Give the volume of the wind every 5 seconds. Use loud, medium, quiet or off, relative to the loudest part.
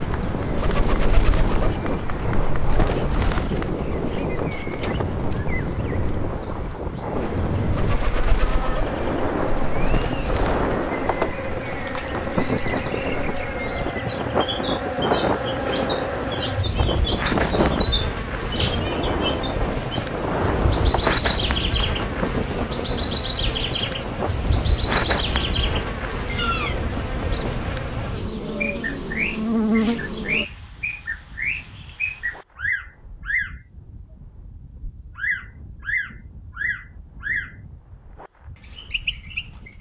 loud, loud, loud, loud, loud, medium, quiet, quiet.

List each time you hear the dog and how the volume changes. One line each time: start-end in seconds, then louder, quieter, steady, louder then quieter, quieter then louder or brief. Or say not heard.
not heard.